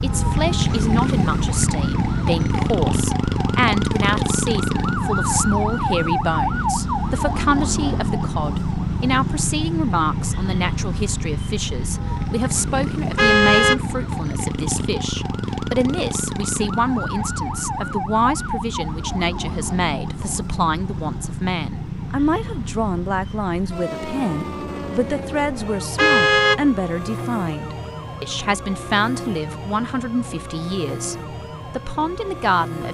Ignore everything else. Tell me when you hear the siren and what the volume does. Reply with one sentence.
You can hear the siren from 0.0 to 32.8 s, getting quieter.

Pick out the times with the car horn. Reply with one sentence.
You can hear the car horn from 13.2 to 13.8 s and from 25.9 to 26.6 s.